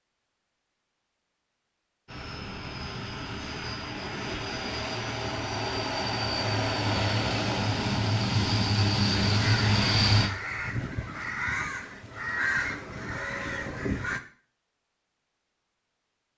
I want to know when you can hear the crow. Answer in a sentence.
The crow can be heard from 9.3 to 14.2 s.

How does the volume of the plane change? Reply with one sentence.
The loudness of the plane goes up.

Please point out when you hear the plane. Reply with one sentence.
The plane can be heard from 2.0 to 10.3 s.